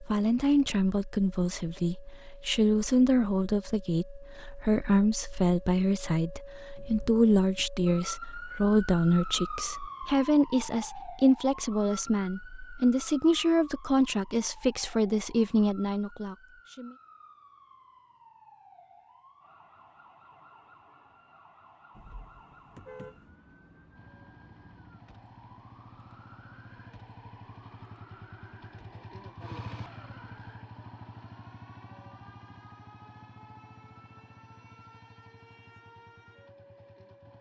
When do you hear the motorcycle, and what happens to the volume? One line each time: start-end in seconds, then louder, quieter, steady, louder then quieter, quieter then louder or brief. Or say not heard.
23.9-37.3 louder then quieter.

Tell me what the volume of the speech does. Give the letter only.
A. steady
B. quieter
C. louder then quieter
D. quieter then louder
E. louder
A.